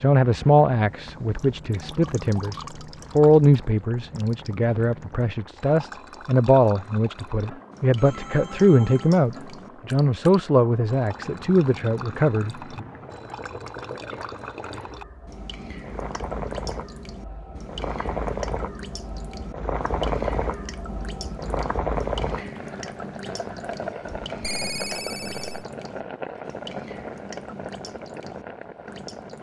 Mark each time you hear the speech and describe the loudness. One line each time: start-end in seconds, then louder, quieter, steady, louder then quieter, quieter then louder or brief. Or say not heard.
0.0-12.8 steady.